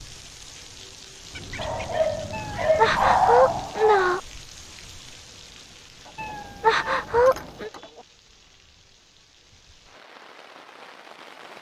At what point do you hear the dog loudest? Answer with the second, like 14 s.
3 s.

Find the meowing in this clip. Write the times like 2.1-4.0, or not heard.
2.3-4.2, 6.2-7.7.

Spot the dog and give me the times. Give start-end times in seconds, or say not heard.
1.6-4.1.